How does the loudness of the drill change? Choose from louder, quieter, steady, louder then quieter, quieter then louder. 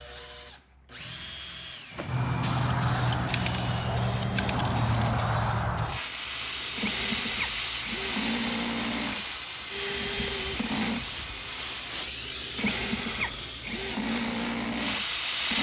louder.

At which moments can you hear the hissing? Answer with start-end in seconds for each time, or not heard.
1.9-15.5.